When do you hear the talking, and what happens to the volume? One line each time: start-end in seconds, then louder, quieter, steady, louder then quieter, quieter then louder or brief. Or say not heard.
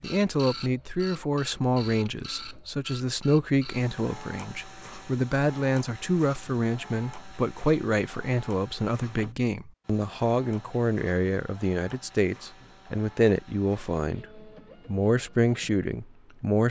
0.0-16.6 steady.